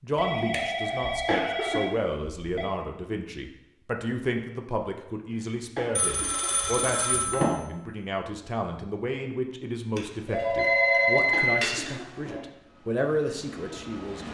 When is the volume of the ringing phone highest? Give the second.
11 s.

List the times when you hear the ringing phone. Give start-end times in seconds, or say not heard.
0.1-2.6, 6.0-7.6, 9.9-12.4.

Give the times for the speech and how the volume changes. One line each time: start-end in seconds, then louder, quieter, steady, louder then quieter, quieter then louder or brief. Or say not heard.
0.0-14.2 steady.